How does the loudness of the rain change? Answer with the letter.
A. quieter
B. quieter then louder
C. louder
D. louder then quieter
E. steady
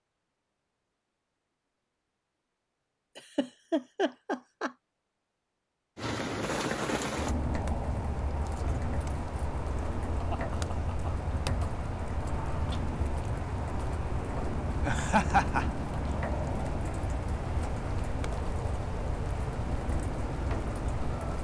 E.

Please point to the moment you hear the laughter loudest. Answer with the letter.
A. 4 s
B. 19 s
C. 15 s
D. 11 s
C.